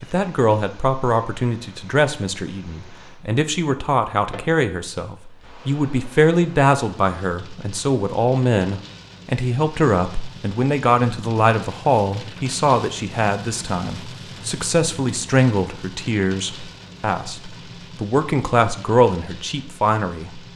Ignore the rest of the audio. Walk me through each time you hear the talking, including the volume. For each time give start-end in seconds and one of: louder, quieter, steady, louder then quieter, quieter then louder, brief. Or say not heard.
0.0-20.4 steady.